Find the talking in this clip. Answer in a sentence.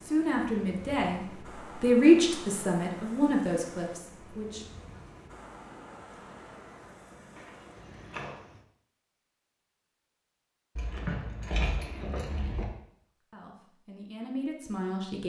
The talking can be heard from 0.0 to 4.6 s and from 13.3 to 15.2 s.